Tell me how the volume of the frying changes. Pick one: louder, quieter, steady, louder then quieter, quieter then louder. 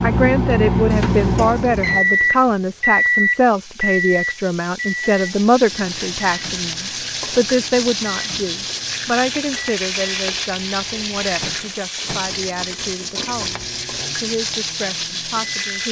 louder.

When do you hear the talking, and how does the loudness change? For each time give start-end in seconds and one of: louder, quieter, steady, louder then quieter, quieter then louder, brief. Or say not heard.
0.0-15.8 quieter.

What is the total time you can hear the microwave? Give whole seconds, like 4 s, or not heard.
16 s.